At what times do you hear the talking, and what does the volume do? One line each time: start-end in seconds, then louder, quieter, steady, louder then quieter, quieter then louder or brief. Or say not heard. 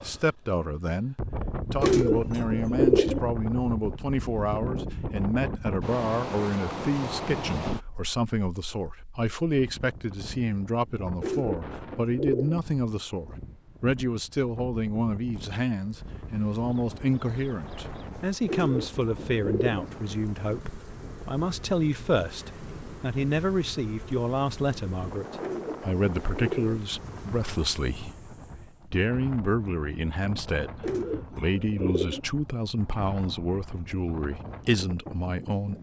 0.0-35.7 steady.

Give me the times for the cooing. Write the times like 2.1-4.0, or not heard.
1.8-3.2, 11.2-12.6, 18.4-19.9, 25.4-26.8, 30.8-32.2.